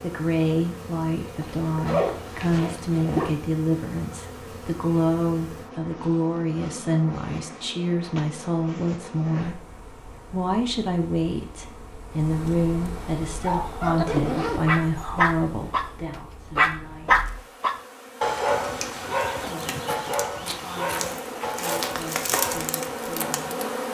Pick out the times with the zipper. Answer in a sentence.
The zipper can be heard from 1.4 to 3.4 s and from 14.1 to 14.8 s.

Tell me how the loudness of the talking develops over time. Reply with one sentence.
The loudness of the talking goes down.